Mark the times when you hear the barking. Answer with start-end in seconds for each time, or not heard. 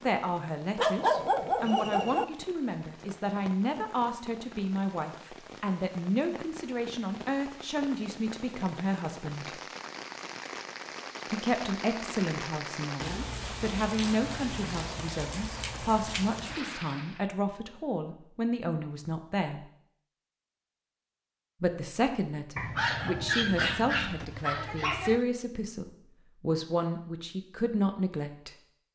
0.8-2.2, 22.6-25.2.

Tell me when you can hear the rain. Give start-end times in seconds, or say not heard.
0.0-17.2.